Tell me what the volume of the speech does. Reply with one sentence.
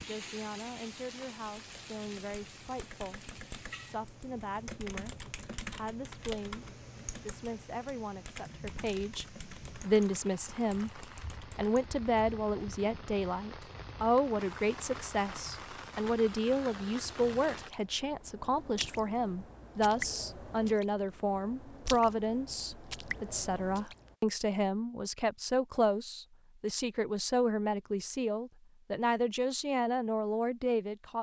The loudness of the speech goes up.